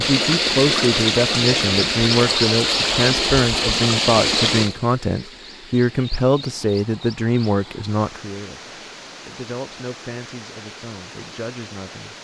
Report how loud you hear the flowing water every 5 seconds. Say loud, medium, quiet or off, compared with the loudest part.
loud, quiet, quiet.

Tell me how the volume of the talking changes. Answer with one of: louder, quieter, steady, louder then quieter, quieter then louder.
quieter.